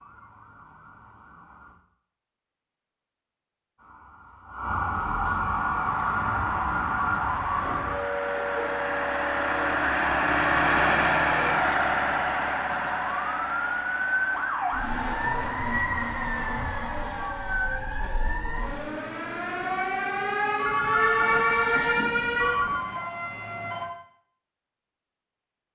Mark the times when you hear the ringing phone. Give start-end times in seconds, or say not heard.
20.6-22.9.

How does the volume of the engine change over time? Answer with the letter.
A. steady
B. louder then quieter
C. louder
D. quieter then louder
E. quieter
B.